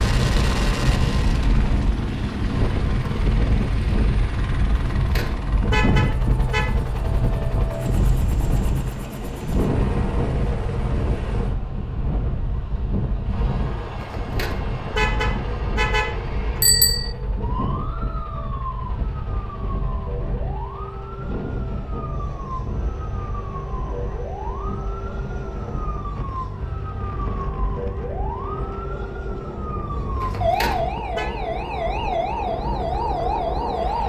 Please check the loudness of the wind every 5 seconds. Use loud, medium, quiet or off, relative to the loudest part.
loud, loud, loud, medium, medium, medium, medium.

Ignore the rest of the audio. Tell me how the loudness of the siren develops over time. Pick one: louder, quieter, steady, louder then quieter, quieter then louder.
louder.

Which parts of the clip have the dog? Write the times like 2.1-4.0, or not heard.
not heard.